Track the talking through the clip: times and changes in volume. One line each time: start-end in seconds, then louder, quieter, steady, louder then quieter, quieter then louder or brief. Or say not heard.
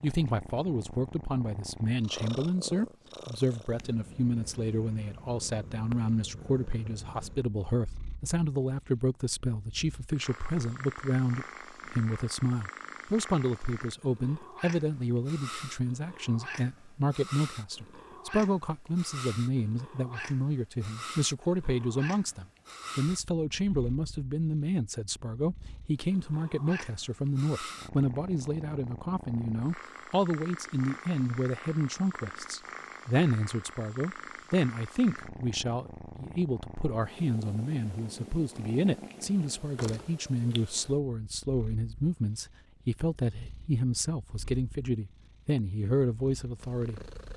0.0-47.3 steady.